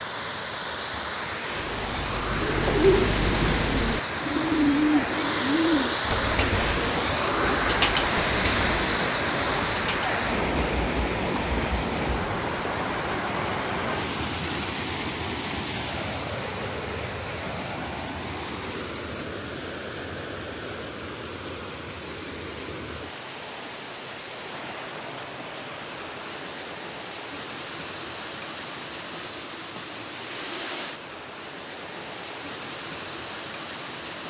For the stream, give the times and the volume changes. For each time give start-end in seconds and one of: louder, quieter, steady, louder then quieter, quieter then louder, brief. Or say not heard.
0.0-34.2 quieter.